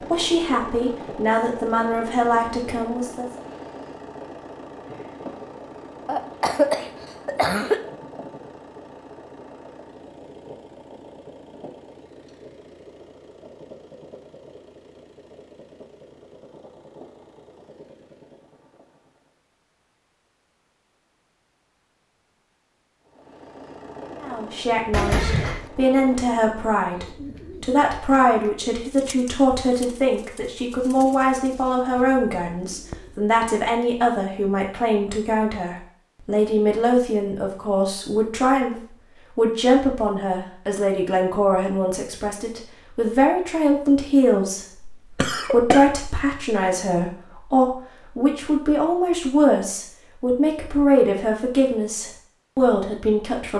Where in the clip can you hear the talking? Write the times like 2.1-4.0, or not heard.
0.0-3.2, 24.2-53.5.